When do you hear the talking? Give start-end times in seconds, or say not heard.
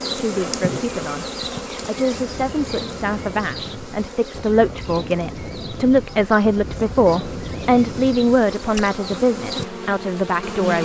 0.1-10.7.